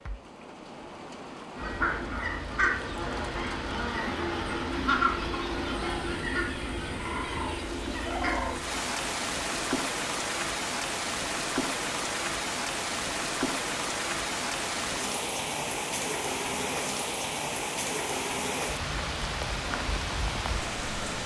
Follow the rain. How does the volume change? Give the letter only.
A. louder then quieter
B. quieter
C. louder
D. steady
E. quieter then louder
C.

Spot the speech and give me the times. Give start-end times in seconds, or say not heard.
not heard.